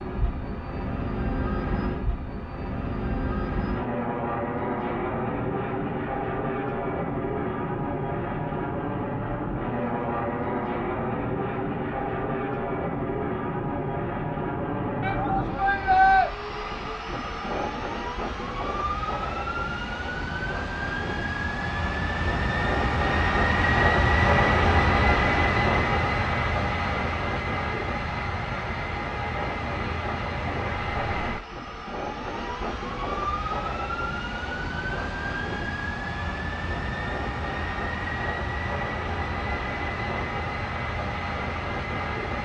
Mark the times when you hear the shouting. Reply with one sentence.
You can hear the shouting from 15.0 to 16.3 s.